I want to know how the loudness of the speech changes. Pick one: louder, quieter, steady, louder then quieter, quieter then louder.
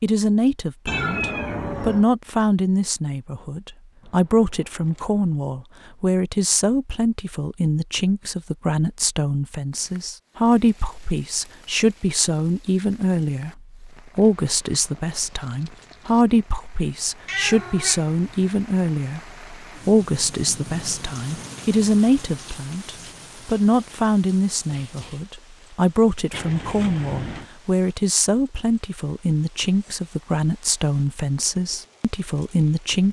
steady.